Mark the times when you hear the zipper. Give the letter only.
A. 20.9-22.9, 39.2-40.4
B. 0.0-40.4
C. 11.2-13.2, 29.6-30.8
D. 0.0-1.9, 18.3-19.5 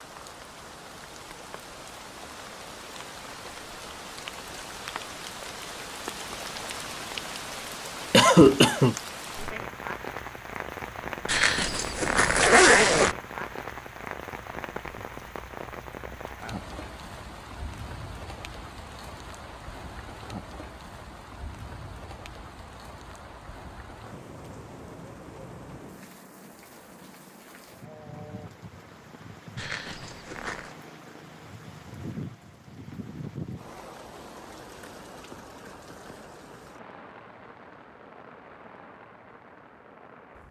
C.